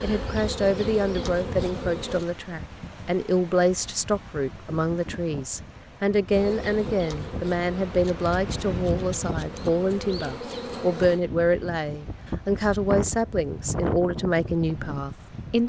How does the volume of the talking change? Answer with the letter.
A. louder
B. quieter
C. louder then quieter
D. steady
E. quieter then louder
D.